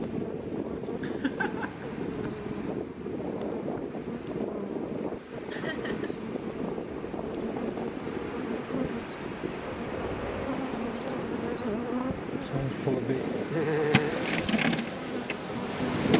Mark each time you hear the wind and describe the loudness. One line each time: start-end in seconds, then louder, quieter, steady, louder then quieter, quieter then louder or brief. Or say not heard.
0.0-16.1 steady.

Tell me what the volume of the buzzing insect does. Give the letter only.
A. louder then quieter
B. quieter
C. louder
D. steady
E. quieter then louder
C.